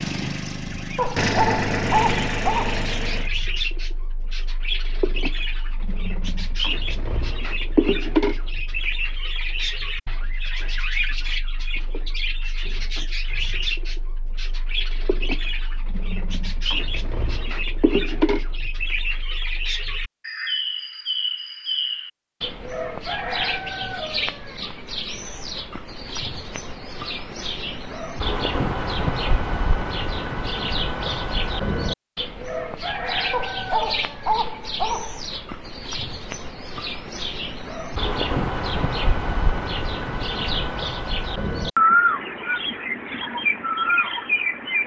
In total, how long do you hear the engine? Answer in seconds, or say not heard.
3 s.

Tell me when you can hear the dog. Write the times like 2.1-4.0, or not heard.
0.9-2.9, 33.3-35.2.